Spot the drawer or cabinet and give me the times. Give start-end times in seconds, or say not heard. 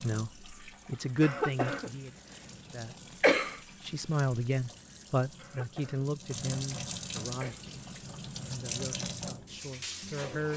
not heard.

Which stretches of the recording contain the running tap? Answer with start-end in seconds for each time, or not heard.
0.0-10.5.